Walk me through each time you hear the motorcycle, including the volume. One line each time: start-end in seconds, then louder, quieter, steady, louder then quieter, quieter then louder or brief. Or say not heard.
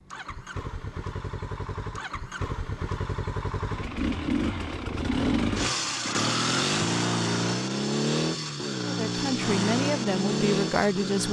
0.0-11.2 louder.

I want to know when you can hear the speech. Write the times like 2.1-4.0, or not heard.
8.8-11.2.